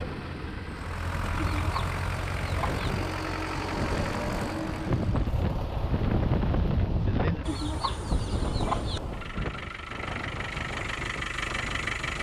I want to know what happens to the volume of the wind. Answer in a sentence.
The volume of the wind goes up, then down.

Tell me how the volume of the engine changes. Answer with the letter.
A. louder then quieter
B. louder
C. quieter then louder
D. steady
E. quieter
C.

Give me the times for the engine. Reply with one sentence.
The engine can be heard from 0.0 to 12.1 s.